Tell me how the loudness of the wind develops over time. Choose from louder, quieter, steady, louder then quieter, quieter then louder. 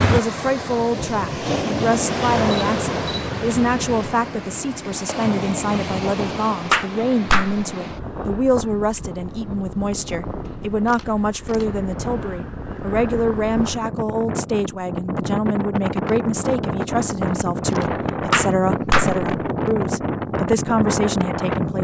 quieter then louder.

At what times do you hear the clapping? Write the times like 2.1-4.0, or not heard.
6.7-7.7, 18.3-19.2.